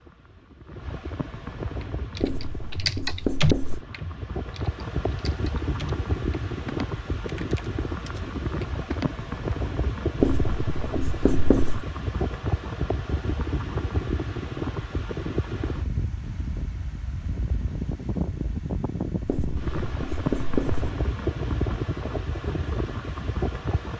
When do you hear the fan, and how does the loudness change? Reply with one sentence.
You can hear the fan from 0.0 to 23.9 s, getting louder.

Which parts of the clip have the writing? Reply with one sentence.
The writing can be heard from 2.2 to 3.9 s, from 10.2 to 11.8 s and from 19.2 to 20.9 s.